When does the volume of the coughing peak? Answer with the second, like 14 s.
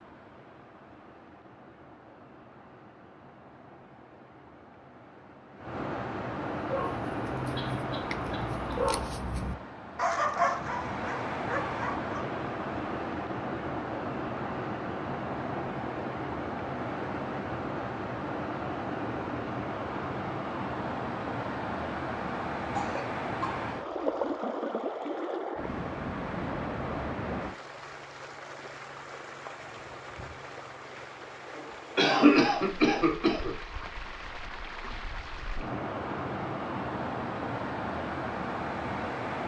32 s.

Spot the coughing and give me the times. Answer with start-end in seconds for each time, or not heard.
7.5-8.8, 22.7-23.6, 31.6-33.5.